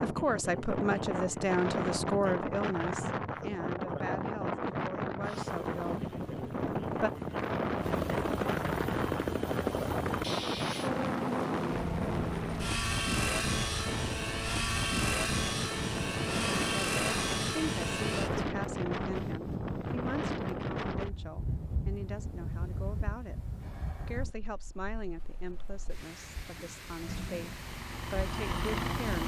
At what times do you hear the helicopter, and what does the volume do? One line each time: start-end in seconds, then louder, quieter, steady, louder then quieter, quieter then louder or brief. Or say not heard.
5.2-18.5 louder
27.0-29.2 brief.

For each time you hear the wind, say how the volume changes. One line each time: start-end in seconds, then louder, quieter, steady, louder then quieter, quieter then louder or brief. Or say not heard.
0.0-29.2 quieter.